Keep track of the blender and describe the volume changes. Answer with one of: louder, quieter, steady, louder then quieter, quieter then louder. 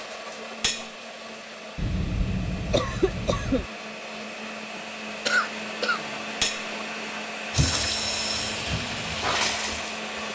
louder.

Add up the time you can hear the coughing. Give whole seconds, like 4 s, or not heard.
3 s.